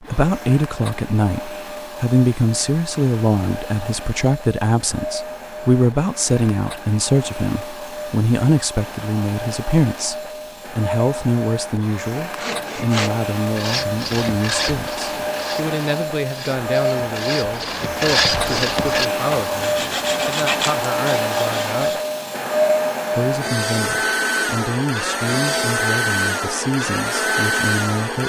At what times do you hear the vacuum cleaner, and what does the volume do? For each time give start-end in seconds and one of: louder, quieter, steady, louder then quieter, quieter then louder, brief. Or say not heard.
0.0-28.2 louder.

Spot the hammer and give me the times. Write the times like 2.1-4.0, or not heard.
not heard.